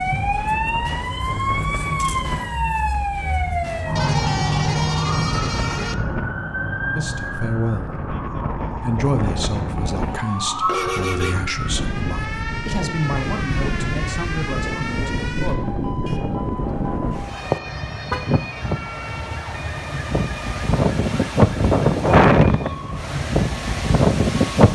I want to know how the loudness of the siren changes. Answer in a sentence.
The loudness of the siren goes down.